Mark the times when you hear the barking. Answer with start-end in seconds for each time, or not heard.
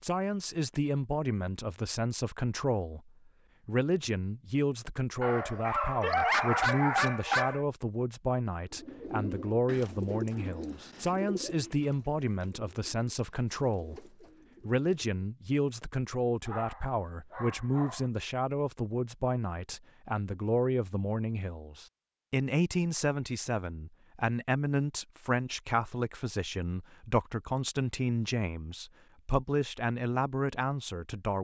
5.2-7.7, 16.4-18.1.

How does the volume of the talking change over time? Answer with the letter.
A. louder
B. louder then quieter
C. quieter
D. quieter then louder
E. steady
E.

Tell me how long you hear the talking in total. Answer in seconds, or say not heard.
31 s.